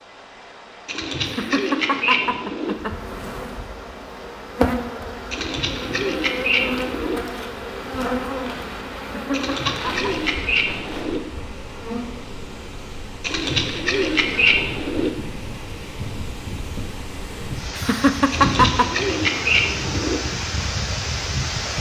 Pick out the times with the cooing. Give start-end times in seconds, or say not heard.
0.8-2.8, 5.3-7.2, 9.3-11.2, 13.2-15.1, 18.3-20.2.